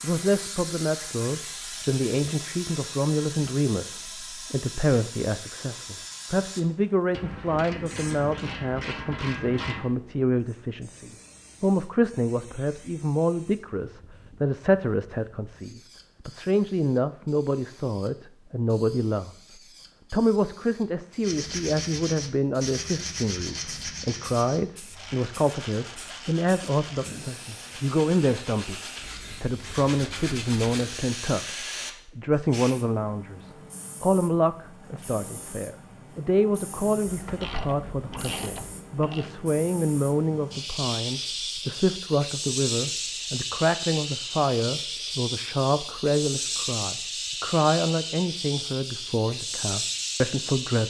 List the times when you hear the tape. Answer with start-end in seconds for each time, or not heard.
not heard.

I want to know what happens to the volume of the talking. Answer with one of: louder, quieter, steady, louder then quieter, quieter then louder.
steady.